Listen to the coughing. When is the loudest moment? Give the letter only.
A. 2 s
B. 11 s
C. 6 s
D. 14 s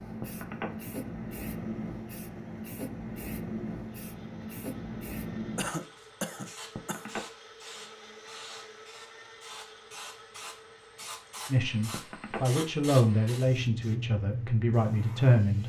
C.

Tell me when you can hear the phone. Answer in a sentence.
The phone can be heard from 0.2 to 0.7 s, from 6.8 to 7.2 s and from 11.9 to 12.4 s.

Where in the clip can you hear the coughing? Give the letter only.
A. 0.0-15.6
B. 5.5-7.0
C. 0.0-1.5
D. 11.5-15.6
B.